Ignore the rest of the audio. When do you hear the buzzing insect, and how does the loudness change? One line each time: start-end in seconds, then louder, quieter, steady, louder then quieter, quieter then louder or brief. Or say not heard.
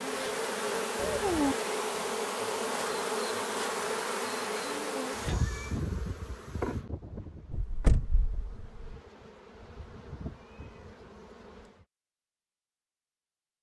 0.0-11.8 quieter.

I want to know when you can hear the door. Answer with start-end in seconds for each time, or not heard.
7.5-8.7.